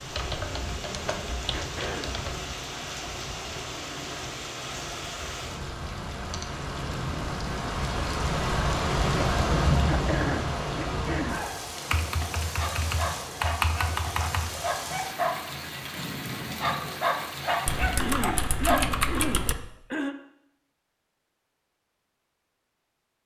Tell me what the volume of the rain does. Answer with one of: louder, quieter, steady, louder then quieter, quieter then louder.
louder then quieter.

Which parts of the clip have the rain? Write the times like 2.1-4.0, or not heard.
0.0-18.1.